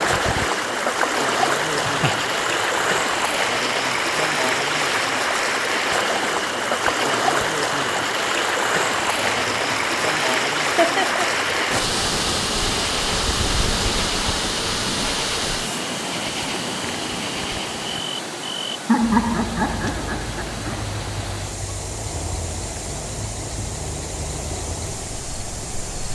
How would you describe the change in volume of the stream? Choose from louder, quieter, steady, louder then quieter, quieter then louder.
quieter.